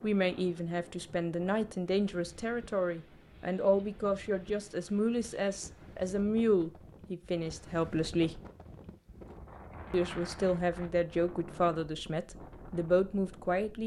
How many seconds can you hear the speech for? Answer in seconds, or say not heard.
12 s.